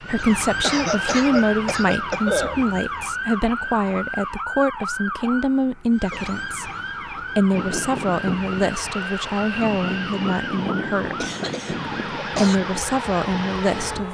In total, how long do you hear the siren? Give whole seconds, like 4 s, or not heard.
14 s.